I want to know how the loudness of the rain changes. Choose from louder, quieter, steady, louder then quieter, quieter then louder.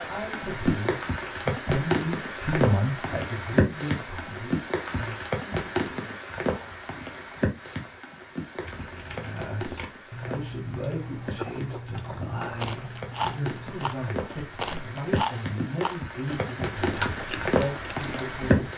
quieter then louder.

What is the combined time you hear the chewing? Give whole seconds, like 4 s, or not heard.
7 s.